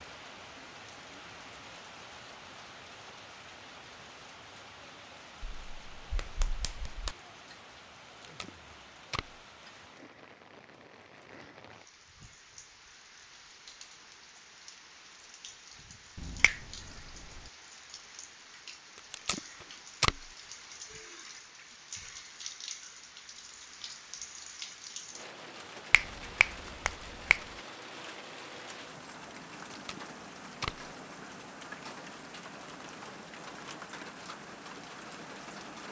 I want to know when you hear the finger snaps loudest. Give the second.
27 s.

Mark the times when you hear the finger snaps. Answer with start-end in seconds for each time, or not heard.
5.4-7.2, 16.1-17.4, 25.9-27.4.